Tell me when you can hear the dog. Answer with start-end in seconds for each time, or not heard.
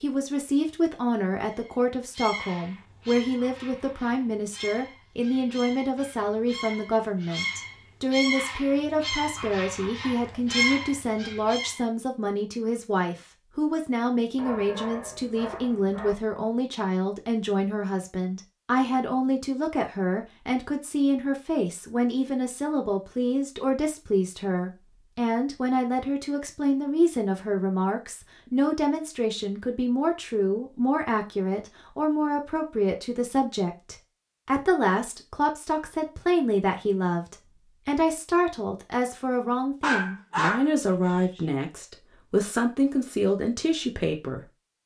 14.3-16.1, 39.8-41.4.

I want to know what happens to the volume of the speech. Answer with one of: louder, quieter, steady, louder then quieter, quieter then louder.
steady.